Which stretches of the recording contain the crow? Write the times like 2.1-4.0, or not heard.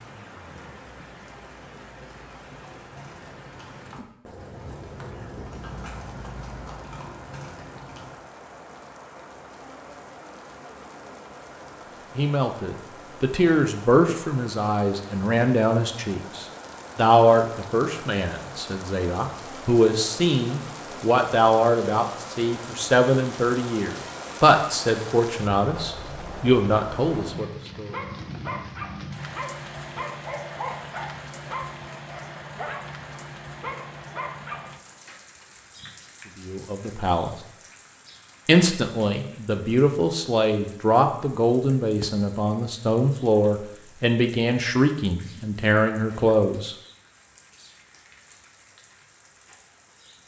not heard.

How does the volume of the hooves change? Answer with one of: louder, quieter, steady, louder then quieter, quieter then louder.
louder.